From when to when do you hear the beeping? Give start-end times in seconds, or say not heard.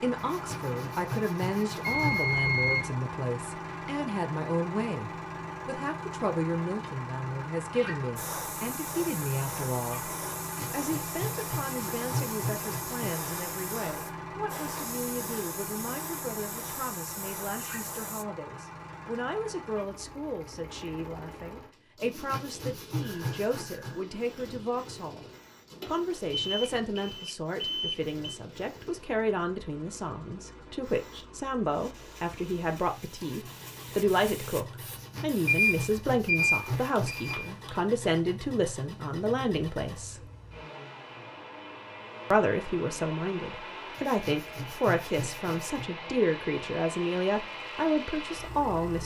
1.8-3.0, 25.8-28.4, 35.4-37.8.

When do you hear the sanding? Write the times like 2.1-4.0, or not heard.
0.1-2.4, 10.4-13.2, 22.0-23.9, 34.9-37.5, 44.0-45.9.